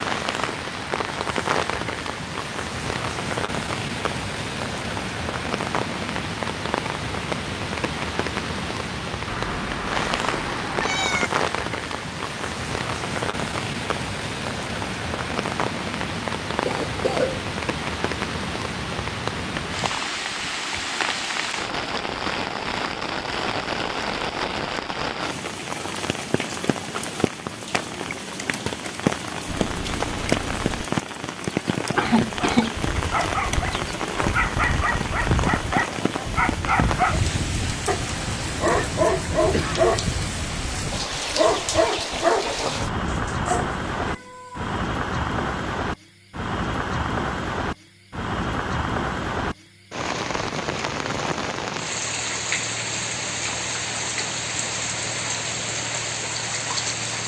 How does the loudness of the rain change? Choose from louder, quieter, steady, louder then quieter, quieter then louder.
steady.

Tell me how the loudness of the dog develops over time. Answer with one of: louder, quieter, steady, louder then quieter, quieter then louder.
steady.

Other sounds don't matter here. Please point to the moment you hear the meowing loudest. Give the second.
11 s.